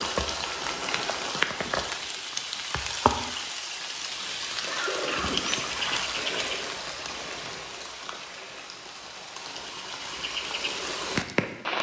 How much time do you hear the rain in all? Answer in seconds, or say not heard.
12 s.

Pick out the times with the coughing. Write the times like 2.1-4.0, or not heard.
4.7-5.5.